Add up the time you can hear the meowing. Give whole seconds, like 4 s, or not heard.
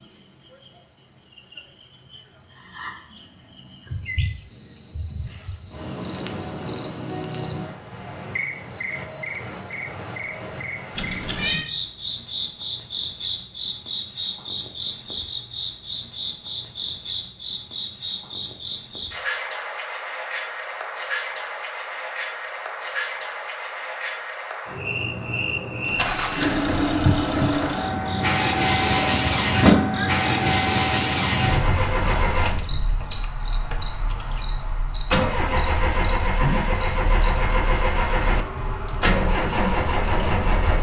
2 s.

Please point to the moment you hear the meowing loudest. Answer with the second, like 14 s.
30 s.